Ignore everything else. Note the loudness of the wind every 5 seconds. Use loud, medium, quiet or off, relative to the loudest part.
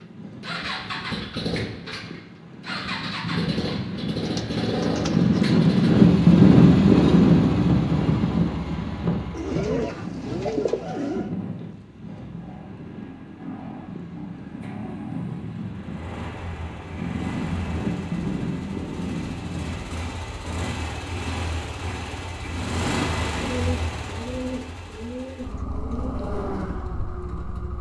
quiet, loud, quiet, quiet, off, off.